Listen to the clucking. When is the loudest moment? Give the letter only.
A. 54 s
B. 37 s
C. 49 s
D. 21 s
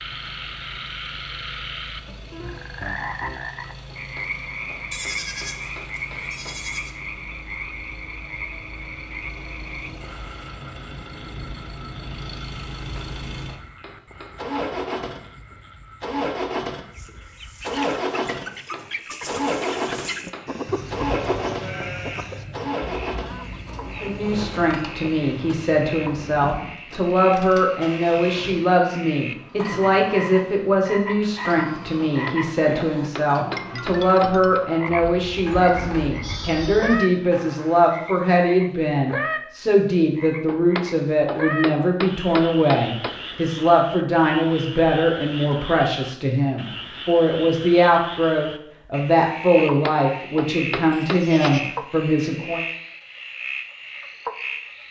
D.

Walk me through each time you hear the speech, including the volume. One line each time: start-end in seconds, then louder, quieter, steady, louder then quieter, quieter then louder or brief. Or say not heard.
24.0-52.6 steady.